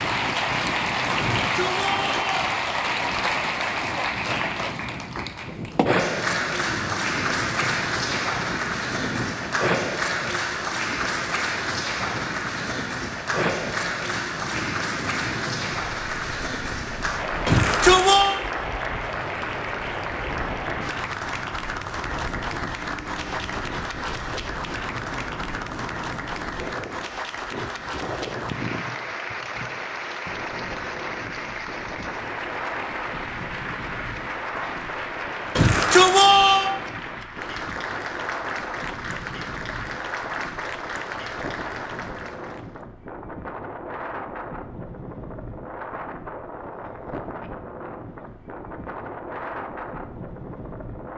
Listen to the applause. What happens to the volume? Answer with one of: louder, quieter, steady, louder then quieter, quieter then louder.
quieter.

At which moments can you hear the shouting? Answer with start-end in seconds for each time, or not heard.
1.4-2.3, 17.4-18.4, 35.5-36.7.